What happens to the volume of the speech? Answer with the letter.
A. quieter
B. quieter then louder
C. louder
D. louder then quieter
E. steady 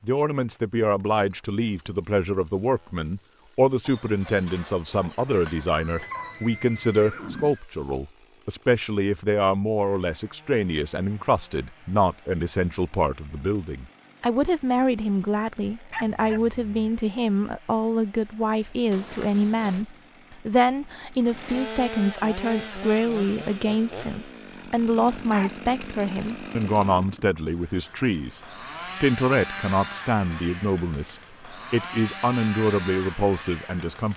E.